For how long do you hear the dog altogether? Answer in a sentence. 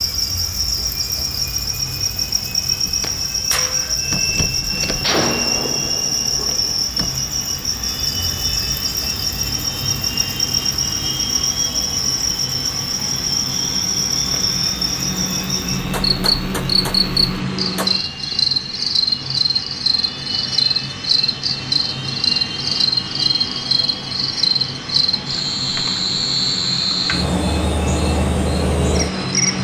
The dog can't be heard in this clip.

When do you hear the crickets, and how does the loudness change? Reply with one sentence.
The crickets can be heard from 0.0 to 29.5 s, at a steady volume.